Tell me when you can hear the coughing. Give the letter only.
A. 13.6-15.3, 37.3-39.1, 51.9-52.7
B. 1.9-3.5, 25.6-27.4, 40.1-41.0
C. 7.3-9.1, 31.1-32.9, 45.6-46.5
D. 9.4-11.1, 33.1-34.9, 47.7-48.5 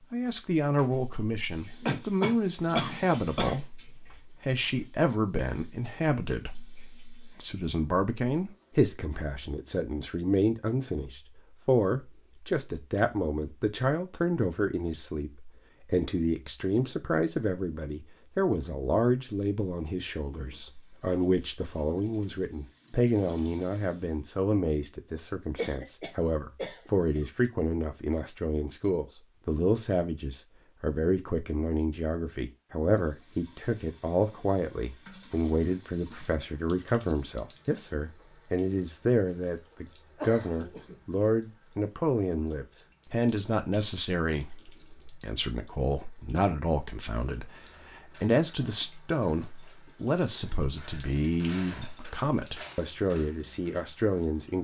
B.